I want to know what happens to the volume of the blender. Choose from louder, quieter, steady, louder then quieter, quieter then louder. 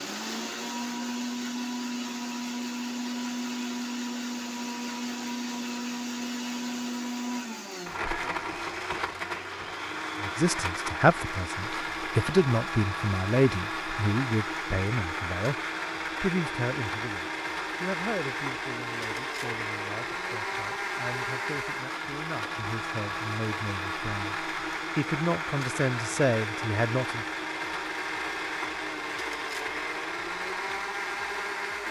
steady.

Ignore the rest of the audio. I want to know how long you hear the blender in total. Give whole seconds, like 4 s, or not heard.
32 s.